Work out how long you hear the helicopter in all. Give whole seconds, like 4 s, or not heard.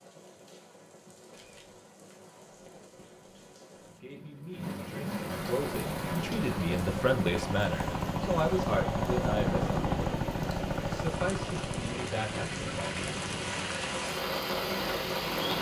10 s.